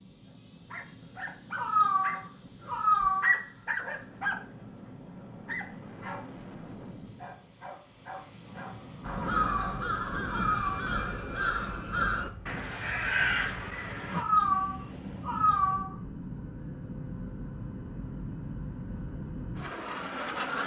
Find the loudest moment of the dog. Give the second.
3 s.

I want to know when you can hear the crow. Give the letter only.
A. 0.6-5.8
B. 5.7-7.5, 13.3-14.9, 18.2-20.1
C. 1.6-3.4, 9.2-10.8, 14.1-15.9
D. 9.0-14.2
D.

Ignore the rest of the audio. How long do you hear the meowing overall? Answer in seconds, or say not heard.
5 s.